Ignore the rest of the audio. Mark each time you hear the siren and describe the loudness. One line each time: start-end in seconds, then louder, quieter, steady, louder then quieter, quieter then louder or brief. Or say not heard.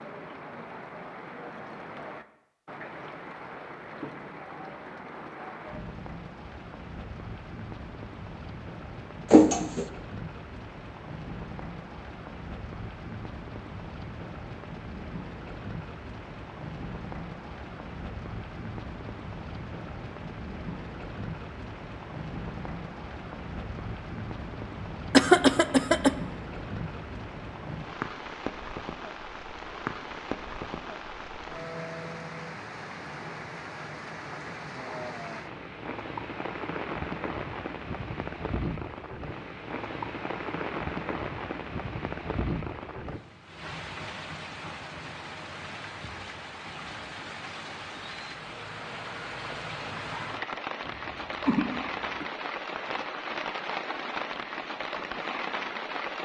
not heard.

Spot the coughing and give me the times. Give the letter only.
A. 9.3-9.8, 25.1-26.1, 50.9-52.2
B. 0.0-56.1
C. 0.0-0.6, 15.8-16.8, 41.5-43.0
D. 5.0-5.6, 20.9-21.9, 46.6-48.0
A.